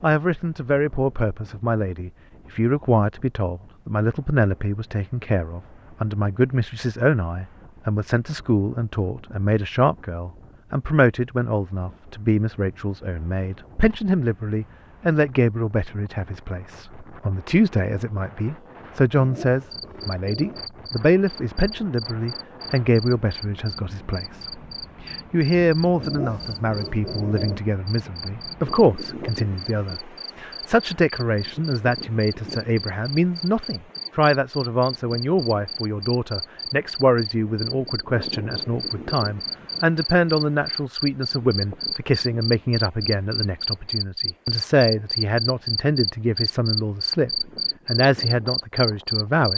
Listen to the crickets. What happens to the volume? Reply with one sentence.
The volume of the crickets goes up.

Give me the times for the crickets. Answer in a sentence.
You can hear the crickets from 19.7 to 49.5 s.